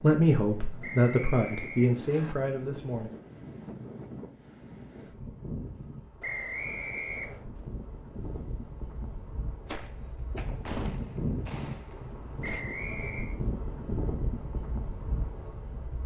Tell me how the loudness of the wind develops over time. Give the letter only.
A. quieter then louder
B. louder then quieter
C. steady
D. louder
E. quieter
D.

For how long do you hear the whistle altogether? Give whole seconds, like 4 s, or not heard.
4 s.